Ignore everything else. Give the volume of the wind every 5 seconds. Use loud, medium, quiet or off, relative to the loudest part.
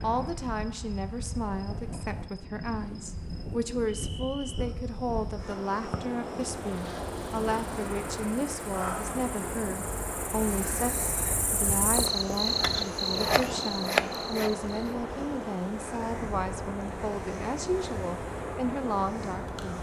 medium, loud, loud, loud.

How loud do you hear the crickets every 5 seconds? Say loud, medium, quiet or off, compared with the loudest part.
quiet, quiet, loud, off.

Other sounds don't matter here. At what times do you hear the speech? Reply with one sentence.
You can hear the speech from 0.0 to 19.7 s.